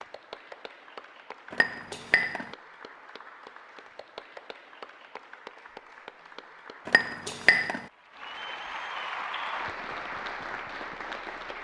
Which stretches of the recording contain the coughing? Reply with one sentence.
The coughing can't be heard in this clip.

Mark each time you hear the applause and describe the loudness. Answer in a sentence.
The applause can be heard from 0.0 to 11.6 s, getting louder.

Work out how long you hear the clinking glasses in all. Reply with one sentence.
The clinking glasses can be heard for 2 seconds in total.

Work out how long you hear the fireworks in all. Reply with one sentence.
You can't hear the fireworks here.